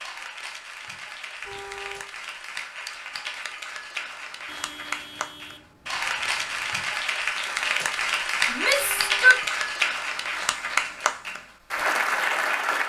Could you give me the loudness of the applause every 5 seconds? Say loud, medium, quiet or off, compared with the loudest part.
medium, loud, loud.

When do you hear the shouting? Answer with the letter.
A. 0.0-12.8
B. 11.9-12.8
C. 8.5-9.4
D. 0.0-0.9
C.